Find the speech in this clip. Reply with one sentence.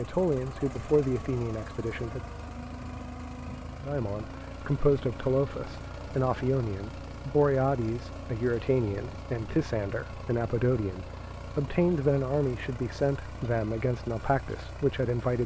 The speech can be heard from 0.0 to 2.2 s and from 3.9 to 15.4 s.